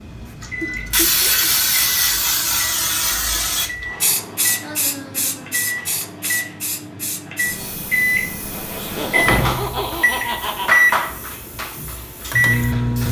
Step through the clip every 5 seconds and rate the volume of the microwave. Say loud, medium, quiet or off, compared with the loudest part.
quiet, medium, loud.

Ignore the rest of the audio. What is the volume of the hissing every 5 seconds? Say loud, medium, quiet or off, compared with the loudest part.
loud, medium, quiet.